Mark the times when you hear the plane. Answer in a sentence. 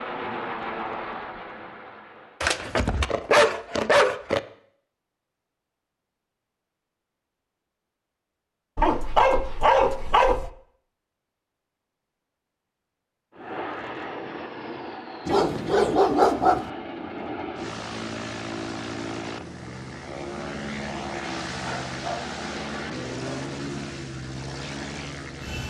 You can hear the plane from 0.0 to 2.5 s and from 13.3 to 25.6 s.